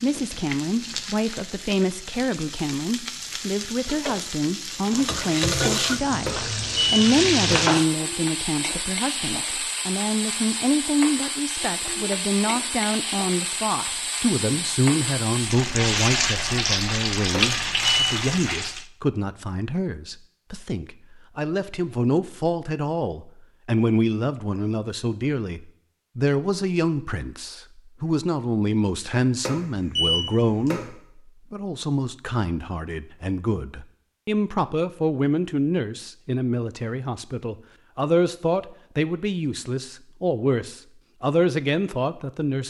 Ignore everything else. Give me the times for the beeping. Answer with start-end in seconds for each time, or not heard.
6.2-7.7, 17.3-18.2, 29.4-30.9.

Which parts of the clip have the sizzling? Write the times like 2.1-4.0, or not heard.
0.0-18.9.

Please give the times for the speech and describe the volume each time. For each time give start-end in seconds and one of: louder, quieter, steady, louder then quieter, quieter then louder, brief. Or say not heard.
0.0-42.6 steady.